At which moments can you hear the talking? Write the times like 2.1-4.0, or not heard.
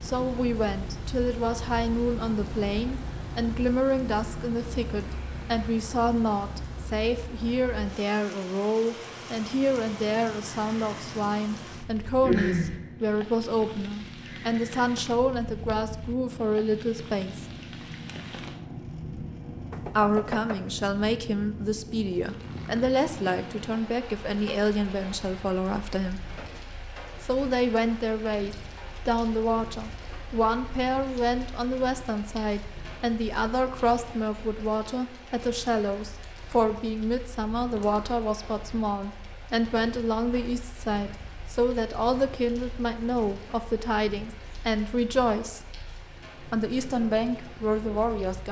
0.0-17.4, 19.9-26.2, 27.2-45.6, 46.5-48.4.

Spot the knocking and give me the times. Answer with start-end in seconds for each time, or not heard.
19.7-20.6.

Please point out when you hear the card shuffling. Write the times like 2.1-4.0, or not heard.
not heard.